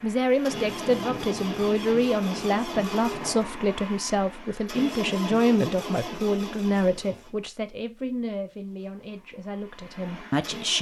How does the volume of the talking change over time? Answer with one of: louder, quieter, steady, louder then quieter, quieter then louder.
quieter.